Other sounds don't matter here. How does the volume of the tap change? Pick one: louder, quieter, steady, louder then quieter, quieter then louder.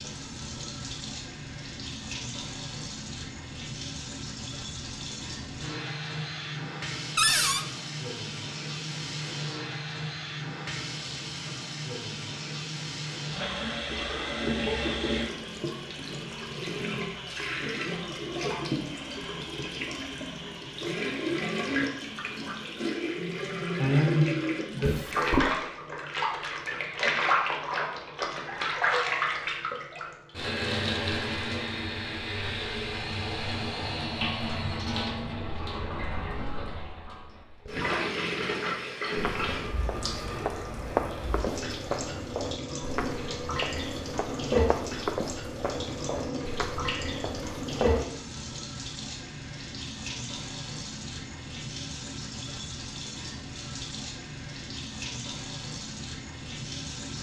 louder then quieter.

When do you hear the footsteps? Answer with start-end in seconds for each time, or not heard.
39.1-48.0.